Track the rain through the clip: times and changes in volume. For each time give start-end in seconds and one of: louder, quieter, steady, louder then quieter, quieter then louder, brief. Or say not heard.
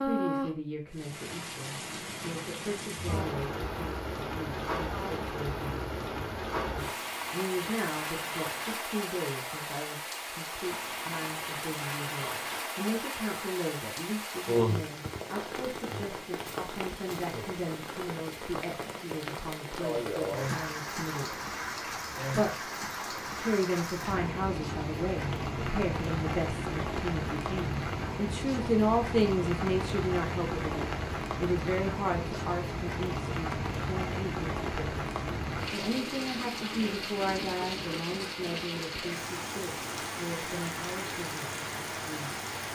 0.0-42.7 steady.